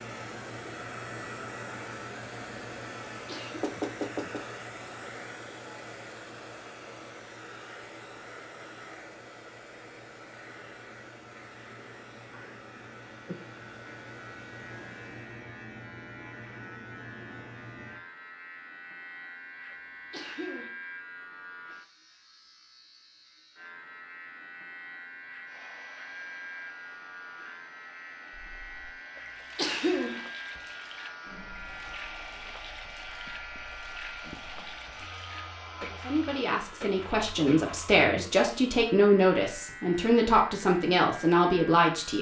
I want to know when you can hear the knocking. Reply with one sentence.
You can hear the knocking from 3.6 to 4.5 s.